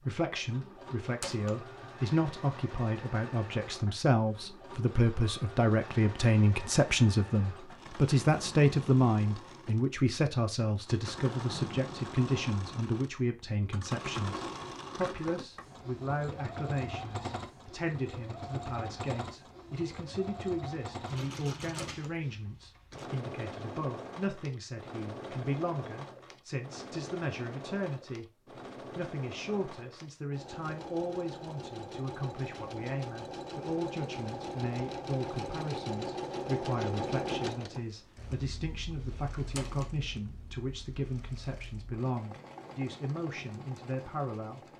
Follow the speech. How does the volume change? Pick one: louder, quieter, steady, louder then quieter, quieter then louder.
quieter.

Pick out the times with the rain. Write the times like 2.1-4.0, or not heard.
not heard.